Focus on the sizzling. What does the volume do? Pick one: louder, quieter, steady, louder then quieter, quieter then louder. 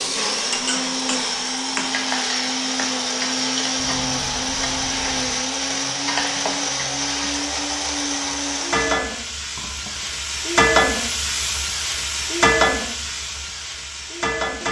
louder.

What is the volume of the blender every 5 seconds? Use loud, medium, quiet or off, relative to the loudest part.
loud, loud, off.